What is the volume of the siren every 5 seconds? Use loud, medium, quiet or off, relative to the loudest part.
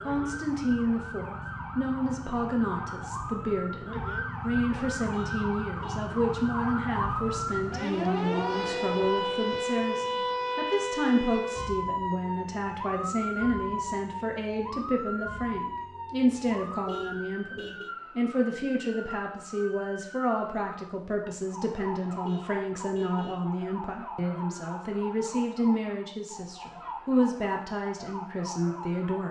medium, loud, loud, medium, medium, medium.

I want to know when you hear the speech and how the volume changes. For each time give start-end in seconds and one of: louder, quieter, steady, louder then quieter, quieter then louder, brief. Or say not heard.
0.0-29.2 steady.